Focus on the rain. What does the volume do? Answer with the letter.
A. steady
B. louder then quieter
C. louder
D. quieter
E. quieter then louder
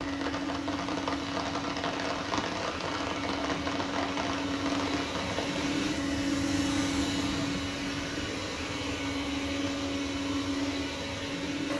D.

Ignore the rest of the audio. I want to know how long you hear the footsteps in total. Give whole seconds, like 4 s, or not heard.
not heard.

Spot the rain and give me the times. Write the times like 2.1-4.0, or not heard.
0.0-8.2.